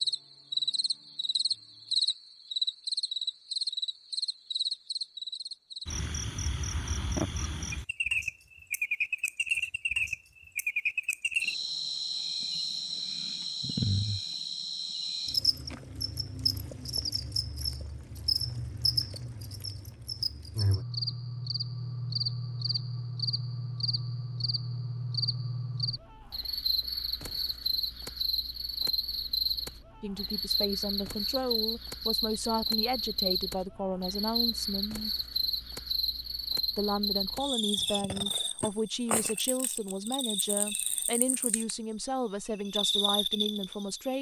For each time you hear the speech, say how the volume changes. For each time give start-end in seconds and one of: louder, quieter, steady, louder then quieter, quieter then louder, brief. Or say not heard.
30.0-35.1 steady
36.8-44.1 steady.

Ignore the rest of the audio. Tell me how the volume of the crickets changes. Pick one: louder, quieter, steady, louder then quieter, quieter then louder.
steady.